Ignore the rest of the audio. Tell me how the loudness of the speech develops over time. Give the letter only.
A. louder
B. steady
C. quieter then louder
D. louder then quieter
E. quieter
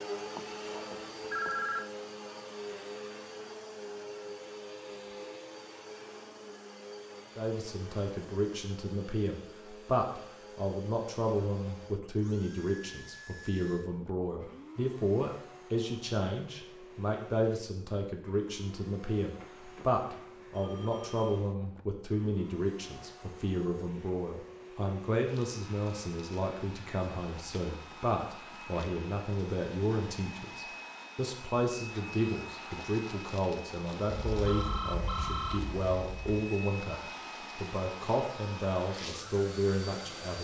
B.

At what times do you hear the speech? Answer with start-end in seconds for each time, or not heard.
7.3-40.4.